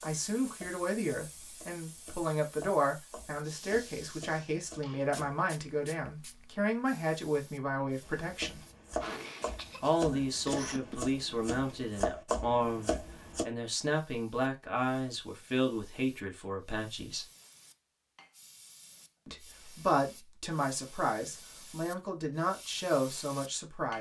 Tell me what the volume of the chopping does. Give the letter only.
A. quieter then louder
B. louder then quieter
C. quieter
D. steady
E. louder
E.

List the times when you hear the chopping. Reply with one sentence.
The chopping can be heard from 0.0 to 5.5 s and from 8.0 to 13.4 s.